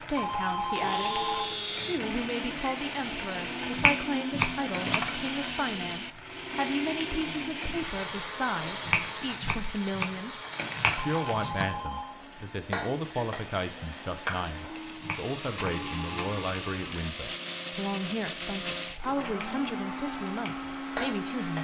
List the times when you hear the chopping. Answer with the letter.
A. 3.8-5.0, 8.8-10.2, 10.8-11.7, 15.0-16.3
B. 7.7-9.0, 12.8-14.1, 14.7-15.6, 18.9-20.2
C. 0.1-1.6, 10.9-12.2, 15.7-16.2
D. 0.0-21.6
A.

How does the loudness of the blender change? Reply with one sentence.
The loudness of the blender goes down, then up.